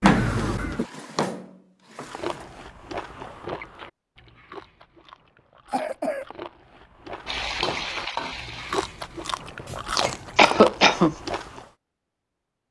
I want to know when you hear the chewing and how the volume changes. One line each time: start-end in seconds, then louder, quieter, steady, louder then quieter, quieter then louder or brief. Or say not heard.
2.0-11.7 quieter then louder.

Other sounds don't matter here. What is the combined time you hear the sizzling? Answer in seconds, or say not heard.
2 s.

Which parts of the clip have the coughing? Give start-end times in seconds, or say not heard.
0.0-0.8, 5.7-6.2, 10.3-11.2.